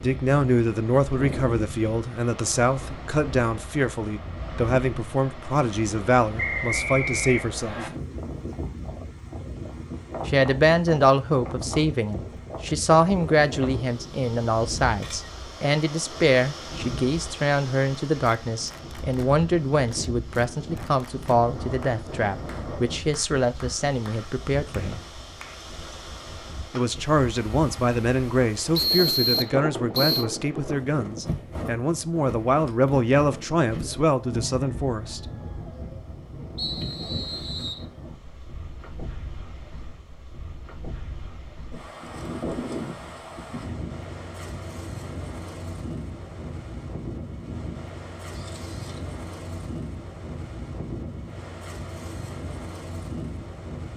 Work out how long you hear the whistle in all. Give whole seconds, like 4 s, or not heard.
4 s.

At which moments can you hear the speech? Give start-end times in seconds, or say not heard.
0.0-7.8, 10.2-25.0, 26.7-35.2.